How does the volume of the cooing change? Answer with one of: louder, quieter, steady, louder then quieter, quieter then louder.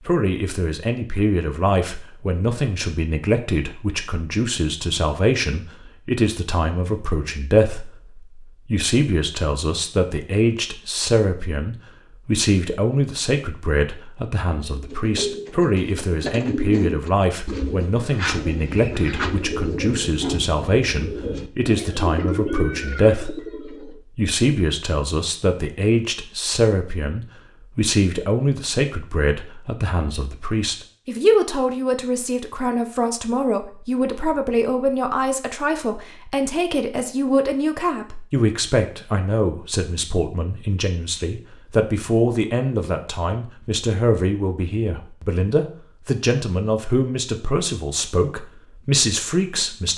steady.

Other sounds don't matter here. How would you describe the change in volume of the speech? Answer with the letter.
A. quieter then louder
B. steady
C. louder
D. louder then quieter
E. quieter
B.